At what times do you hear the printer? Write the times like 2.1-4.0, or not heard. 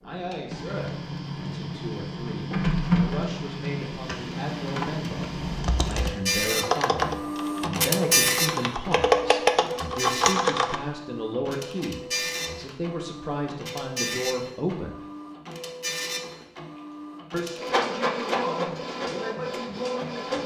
0.1-20.4.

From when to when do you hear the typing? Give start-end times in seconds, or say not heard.
5.3-10.8.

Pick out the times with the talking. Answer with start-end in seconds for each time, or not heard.
0.0-14.9, 17.3-20.4.